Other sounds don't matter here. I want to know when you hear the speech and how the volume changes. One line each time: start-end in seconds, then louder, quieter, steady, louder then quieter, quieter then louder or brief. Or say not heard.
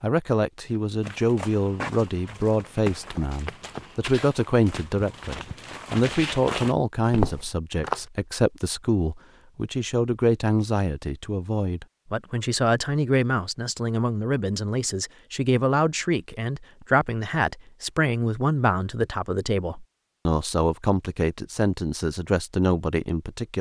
0.0-23.5 steady.